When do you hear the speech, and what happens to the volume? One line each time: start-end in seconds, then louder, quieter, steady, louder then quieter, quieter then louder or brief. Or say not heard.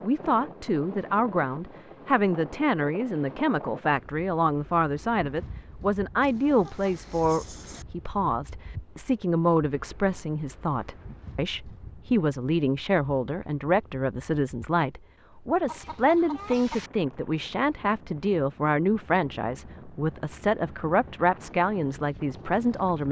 0.0-23.0 steady.